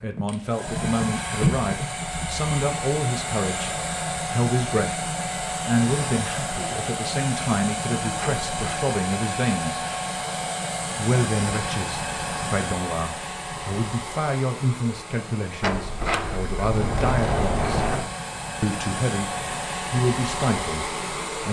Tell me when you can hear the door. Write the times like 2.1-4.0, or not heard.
8.2-8.8, 15.6-18.1.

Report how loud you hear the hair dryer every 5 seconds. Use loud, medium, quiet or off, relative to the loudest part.
loud, loud, loud, medium, loud.